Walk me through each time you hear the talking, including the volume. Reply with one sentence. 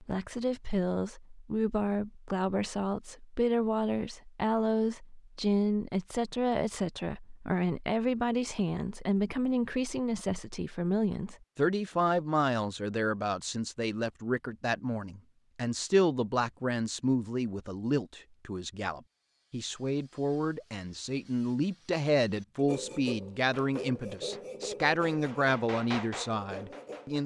You can hear the talking from 0.0 to 27.2 s, at a steady volume.